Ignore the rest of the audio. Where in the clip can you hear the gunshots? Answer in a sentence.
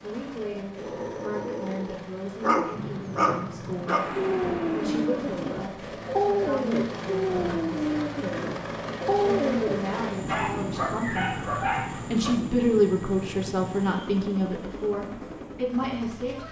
You can hear the gunshots from 2.7 to 5.5 s.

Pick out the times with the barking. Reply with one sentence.
You can hear the barking from 0.8 to 12.3 s.